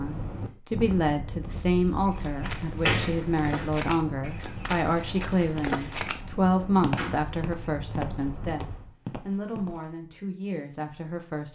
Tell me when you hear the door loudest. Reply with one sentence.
The volume of the door peaks at 3 seconds.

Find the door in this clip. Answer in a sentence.
The door can be heard from 2.4 to 3.7 s and from 7.0 to 7.7 s.